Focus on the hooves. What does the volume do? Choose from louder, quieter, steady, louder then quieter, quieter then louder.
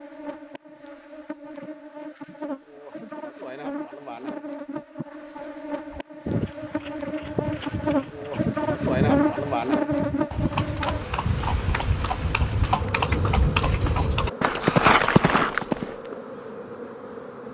louder.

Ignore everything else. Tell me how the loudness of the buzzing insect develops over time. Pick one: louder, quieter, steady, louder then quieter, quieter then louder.
louder then quieter.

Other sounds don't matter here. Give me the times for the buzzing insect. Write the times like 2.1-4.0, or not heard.
0.0-17.4.